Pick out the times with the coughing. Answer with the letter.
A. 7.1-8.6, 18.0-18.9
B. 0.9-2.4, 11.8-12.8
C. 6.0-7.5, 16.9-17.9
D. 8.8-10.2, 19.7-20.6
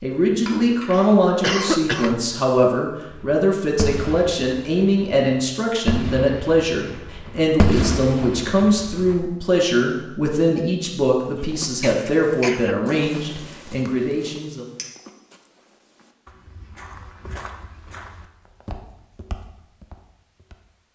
B.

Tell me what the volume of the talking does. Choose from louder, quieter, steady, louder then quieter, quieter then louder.
steady.